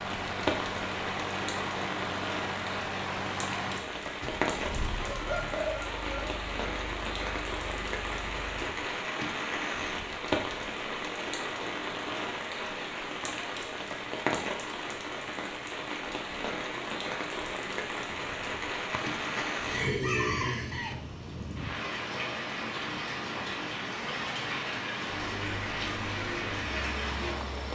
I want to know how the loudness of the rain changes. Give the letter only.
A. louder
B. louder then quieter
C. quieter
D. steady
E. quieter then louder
D.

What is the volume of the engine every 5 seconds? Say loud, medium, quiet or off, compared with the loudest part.
loud, medium, off, off, off, medium.